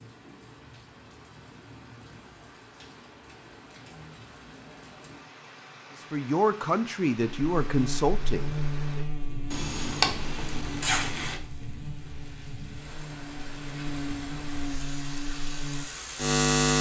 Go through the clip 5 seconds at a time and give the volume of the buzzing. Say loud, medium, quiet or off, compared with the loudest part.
off, medium, quiet, loud.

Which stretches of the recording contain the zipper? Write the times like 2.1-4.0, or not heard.
9.5-11.4.